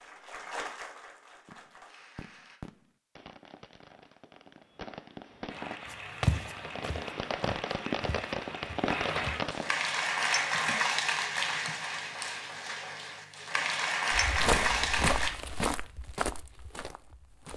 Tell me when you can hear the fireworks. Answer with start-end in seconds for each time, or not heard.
1.4-9.8.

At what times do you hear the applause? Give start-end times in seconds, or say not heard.
0.0-2.6, 5.5-15.3.